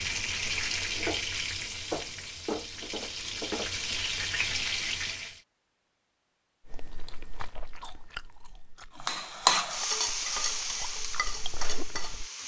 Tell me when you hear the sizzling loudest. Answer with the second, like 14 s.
10 s.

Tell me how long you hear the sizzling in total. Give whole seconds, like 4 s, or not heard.
9 s.